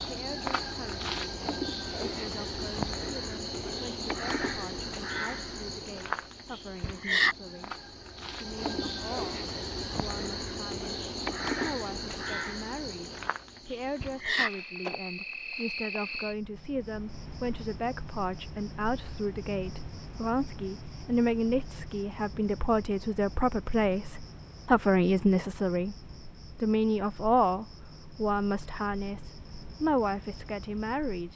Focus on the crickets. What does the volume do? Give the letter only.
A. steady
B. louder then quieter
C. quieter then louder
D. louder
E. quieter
E.